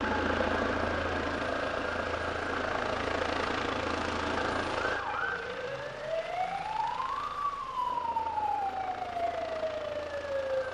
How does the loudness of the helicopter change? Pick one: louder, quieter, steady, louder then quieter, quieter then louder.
quieter.